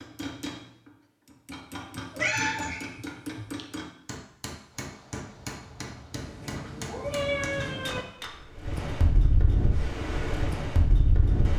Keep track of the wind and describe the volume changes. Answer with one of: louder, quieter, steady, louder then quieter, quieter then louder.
louder.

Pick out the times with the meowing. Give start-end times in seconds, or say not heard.
1.9-3.6, 6.1-8.1.